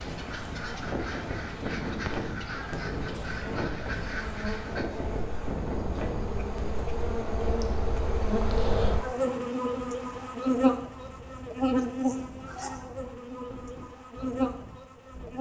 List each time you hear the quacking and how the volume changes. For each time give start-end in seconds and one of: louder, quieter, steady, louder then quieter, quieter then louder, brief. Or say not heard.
0.0-4.9 steady.